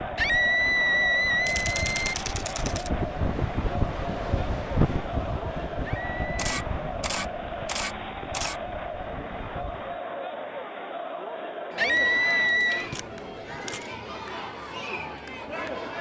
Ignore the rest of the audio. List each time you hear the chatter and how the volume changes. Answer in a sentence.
You can hear the chatter from 0.0 to 15.9 s, at a steady volume.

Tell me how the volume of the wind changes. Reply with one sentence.
The volume of the wind goes up, then down.